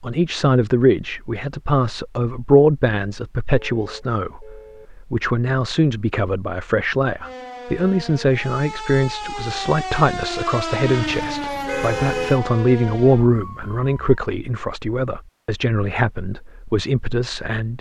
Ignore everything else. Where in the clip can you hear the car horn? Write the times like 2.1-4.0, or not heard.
3.5-4.9, 11.1-12.4.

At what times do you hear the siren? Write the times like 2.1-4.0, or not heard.
7.2-14.2.